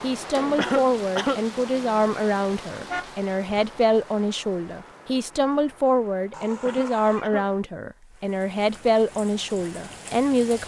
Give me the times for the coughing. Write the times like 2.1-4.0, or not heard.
0.6-1.4, 6.6-7.5.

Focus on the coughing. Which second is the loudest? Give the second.
1 s.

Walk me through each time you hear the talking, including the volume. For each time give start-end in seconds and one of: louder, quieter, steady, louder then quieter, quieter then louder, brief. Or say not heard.
0.0-10.6 steady.